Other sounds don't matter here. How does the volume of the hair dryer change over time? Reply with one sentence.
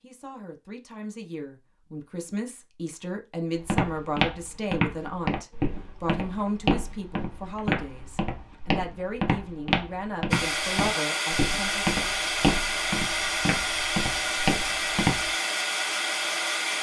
The volume of the hair dryer stays about the same.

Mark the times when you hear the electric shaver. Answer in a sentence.
The electric shaver can't be heard in this clip.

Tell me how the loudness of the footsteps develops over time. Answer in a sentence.
The volume of the footsteps stays about the same.